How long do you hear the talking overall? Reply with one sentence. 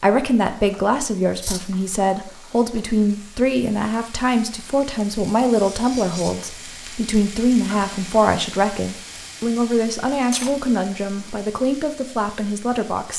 The talking can be heard for 13 seconds in total.